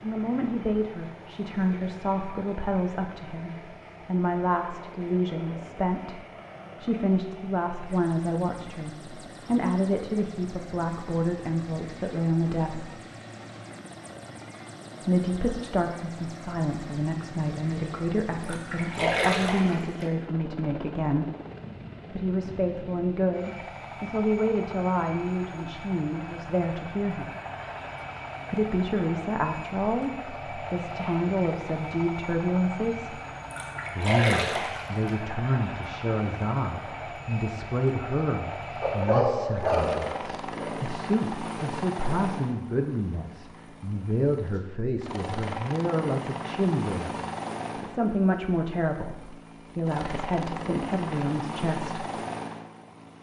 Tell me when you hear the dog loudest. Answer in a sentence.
The volume of the dog peaks at 39 seconds.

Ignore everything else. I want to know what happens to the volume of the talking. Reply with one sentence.
The volume of the talking stays about the same.